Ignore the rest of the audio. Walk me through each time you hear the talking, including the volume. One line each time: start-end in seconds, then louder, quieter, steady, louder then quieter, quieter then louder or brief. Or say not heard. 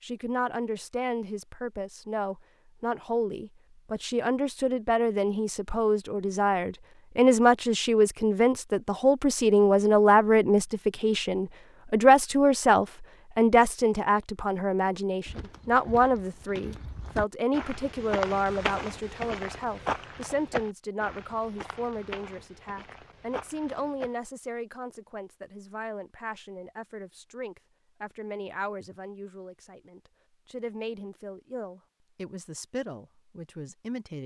0.0-34.2 louder then quieter.